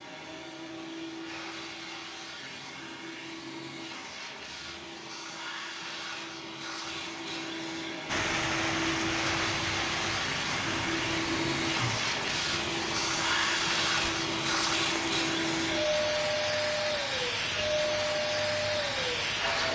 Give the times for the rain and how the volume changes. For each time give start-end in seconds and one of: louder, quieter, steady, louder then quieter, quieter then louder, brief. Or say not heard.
8.1-19.7 quieter.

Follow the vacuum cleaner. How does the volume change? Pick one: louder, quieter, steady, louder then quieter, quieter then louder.
louder.